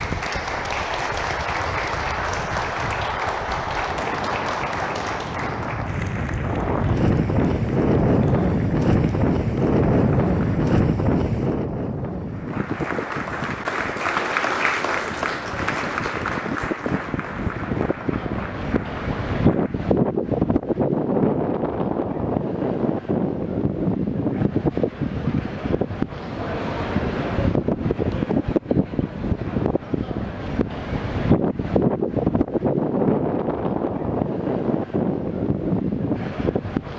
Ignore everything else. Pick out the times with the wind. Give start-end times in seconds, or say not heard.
0.0-36.9.